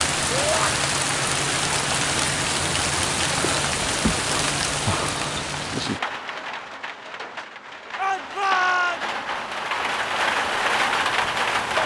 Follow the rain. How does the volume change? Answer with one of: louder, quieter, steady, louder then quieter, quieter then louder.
quieter then louder.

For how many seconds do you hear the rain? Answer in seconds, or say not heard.
12 s.